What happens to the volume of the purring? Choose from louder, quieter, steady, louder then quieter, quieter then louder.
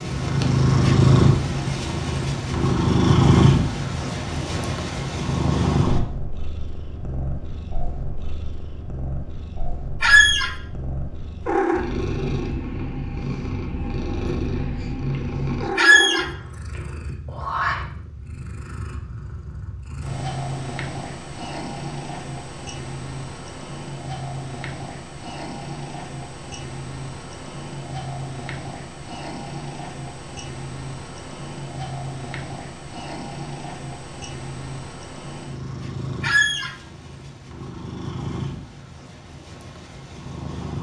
quieter.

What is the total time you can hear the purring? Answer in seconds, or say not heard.
41 s.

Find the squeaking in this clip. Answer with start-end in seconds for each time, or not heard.
10.0-10.5, 15.8-16.2, 36.2-36.7.